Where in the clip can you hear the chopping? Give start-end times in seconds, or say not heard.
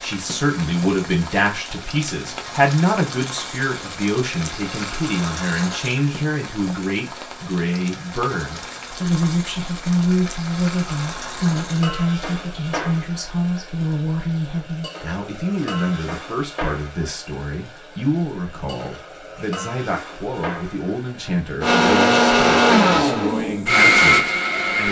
not heard.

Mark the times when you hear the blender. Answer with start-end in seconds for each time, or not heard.
21.6-24.8.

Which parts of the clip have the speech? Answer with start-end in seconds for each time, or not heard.
0.0-24.8.